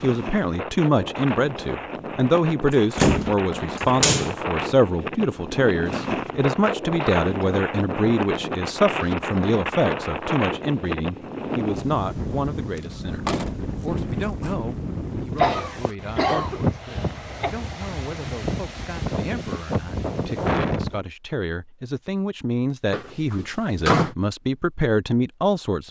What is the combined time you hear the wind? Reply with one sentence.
The wind can be heard for 21 seconds in total.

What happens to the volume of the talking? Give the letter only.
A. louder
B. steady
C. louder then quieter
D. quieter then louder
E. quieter
D.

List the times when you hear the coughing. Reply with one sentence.
The coughing can be heard from 15.3 to 17.6 s.